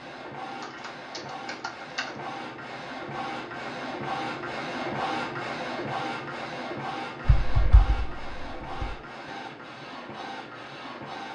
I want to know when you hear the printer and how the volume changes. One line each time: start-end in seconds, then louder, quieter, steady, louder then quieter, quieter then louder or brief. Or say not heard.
0.0-11.3 louder then quieter.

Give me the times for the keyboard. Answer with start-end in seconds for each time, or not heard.
0.6-2.1, 7.2-8.9.